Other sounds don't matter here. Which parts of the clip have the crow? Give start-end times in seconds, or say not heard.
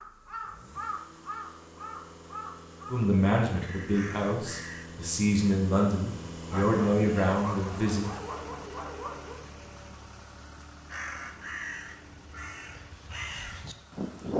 0.0-4.8, 10.8-14.3.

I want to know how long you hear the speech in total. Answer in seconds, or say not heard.
5 s.